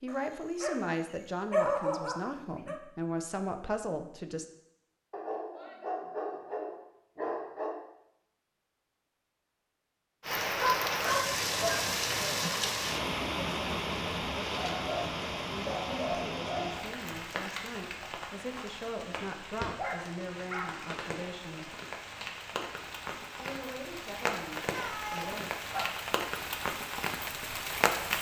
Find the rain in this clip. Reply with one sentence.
The rain can be heard from 10.2 to 28.1 s.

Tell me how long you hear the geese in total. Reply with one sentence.
You can't hear the geese here.